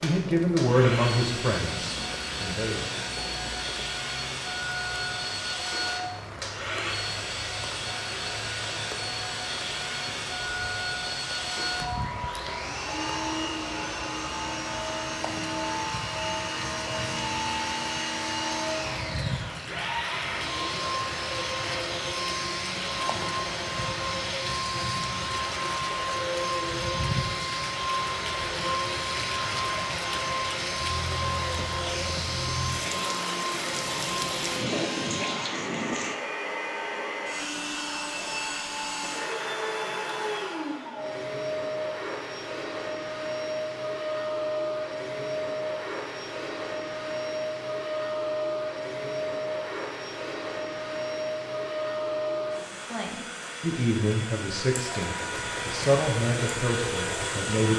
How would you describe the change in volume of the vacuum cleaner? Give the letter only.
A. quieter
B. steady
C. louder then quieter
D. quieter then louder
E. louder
B.